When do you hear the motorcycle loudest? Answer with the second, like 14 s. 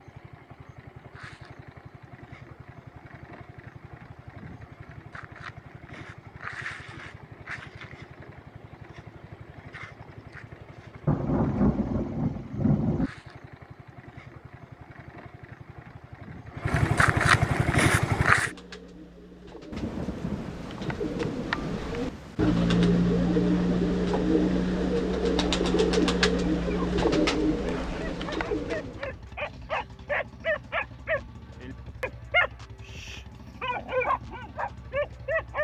18 s.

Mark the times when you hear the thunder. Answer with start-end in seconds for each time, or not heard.
11.1-13.1, 19.7-22.6.